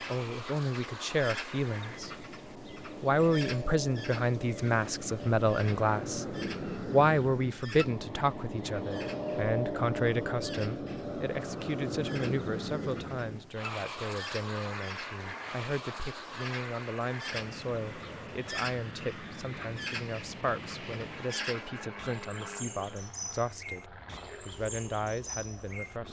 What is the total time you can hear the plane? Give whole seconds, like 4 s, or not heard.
26 s.